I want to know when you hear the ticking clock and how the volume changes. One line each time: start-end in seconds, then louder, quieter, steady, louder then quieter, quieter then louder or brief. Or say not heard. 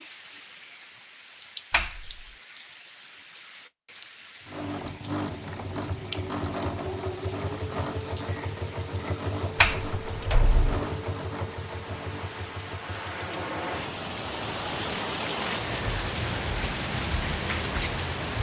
not heard.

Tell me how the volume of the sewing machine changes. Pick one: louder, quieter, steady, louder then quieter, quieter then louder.
quieter.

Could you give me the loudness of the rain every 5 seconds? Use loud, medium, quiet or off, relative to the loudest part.
quiet, quiet, medium, loud.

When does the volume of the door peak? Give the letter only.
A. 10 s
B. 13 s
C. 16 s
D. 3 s
A.